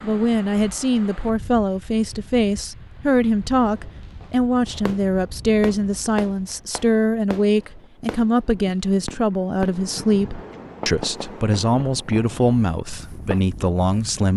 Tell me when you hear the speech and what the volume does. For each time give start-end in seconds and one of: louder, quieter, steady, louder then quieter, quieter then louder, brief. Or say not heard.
0.0-14.3 steady.